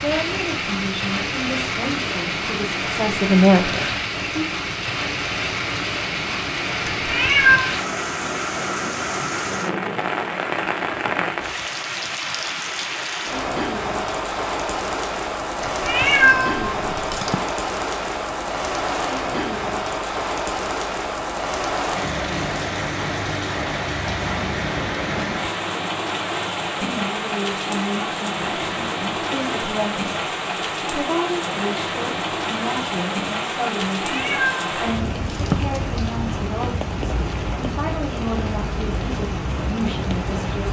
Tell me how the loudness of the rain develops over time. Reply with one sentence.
The loudness of the rain stays about the same.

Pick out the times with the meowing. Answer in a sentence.
The meowing can be heard from 6.8 to 7.7 s, from 15.6 to 17.4 s and from 33.8 to 35.8 s.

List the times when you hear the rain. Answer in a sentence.
You can hear the rain from 0.0 to 40.6 s.